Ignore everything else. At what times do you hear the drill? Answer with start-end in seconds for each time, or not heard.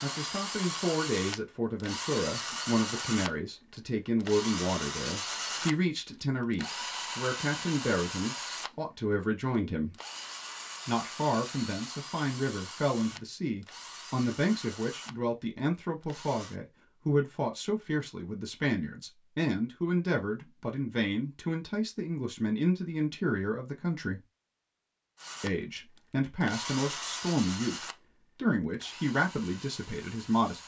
0.0-8.8, 9.9-16.6, 25.1-30.6.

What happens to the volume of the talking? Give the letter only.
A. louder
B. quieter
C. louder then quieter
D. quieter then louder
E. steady
E.